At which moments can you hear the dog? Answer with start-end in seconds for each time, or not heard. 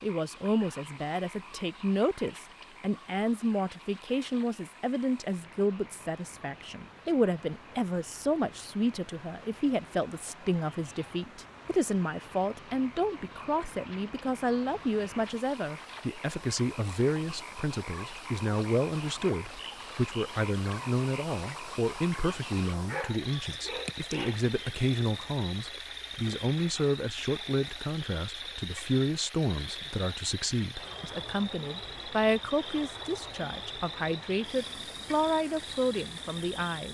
22.8-24.4.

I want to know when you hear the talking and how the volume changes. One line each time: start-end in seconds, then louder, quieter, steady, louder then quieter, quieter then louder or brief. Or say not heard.
0.0-36.8 steady.